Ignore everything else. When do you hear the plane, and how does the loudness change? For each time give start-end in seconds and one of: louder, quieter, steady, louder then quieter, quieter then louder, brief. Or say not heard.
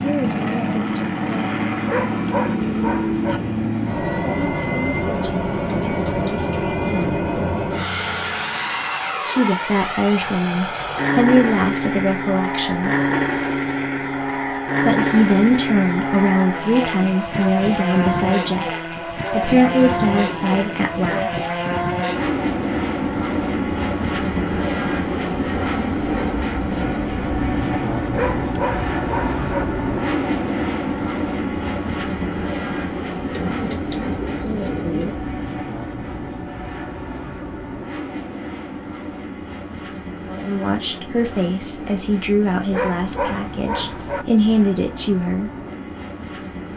0.0-46.7 quieter.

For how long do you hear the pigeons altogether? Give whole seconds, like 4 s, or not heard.
6 s.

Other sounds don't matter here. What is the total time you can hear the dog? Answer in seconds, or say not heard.
5 s.